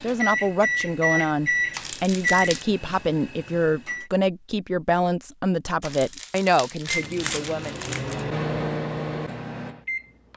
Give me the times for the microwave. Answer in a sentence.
You can hear the microwave from 0.0 to 4.1 s and from 6.8 to 10.3 s.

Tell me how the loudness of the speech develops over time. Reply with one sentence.
The volume of the speech stays about the same.